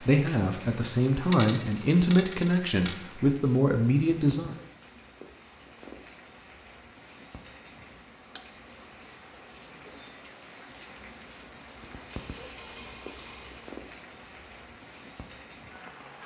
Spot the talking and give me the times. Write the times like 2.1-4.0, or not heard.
0.0-4.5.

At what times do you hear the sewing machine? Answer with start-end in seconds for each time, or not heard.
not heard.